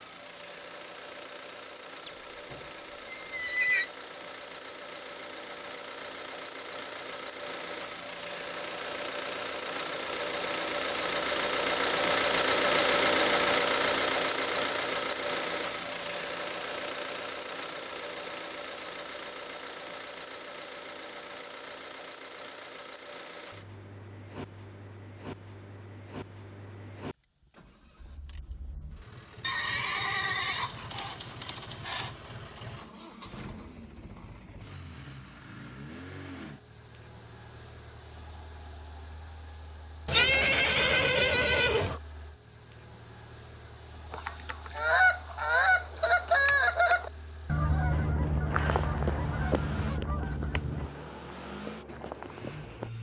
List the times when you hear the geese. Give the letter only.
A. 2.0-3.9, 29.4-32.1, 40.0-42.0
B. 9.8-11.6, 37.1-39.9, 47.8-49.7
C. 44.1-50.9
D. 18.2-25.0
C.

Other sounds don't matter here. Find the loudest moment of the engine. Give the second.
13 s.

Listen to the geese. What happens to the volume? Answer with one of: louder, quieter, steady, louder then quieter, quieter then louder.
quieter.